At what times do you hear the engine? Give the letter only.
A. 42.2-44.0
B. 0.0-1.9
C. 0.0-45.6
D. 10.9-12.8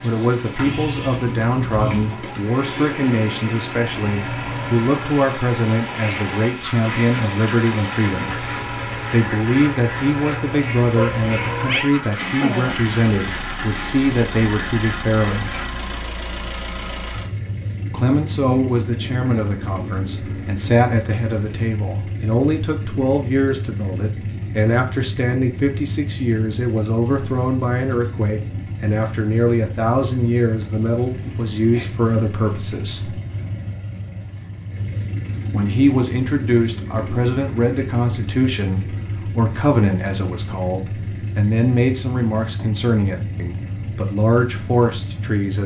C.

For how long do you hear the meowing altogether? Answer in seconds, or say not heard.
2 s.